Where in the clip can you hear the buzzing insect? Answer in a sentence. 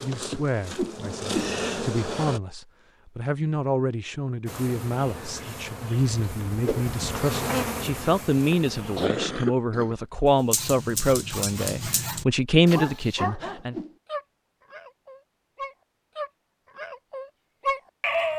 The buzzing insect can be heard from 0.0 to 2.4 s and from 4.5 to 9.1 s.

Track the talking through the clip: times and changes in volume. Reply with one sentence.
You can hear the talking from 0.0 to 13.8 s, getting louder.